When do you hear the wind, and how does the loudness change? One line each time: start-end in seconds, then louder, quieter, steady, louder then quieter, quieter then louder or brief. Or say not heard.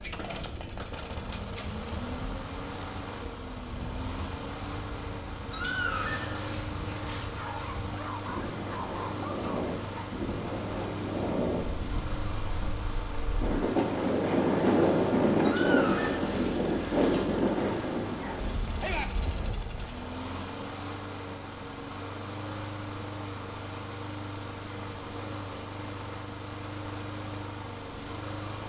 0.0-19.9 louder.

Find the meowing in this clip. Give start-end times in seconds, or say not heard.
5.5-7.3, 15.4-17.3.